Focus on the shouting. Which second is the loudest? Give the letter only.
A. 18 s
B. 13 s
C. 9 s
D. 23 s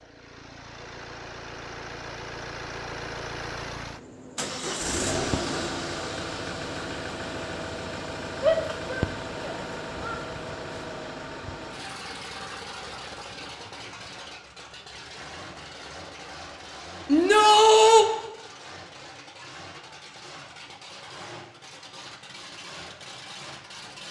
A.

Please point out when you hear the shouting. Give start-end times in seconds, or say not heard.
8.4-10.2, 17.1-18.1.